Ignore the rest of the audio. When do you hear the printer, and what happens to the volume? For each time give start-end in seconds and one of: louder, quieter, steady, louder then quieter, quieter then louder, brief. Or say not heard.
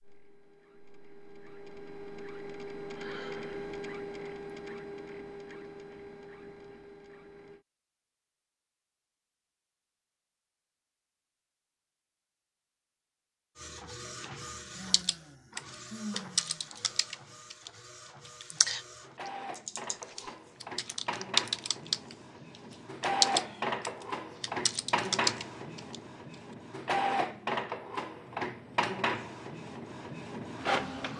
0.0-7.7 louder then quieter
13.6-31.1 louder.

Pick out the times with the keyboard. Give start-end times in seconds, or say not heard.
14.9-22.1, 23.0-25.9.